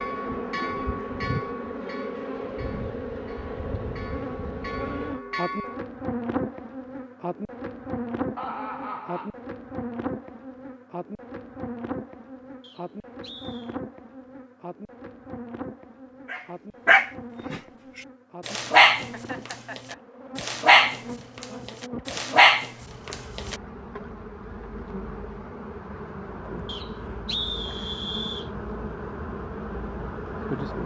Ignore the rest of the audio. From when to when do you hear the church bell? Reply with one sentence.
The church bell can be heard from 0.0 to 5.8 s.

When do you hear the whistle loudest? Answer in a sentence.
The loudest moment of the whistle is at 27 seconds.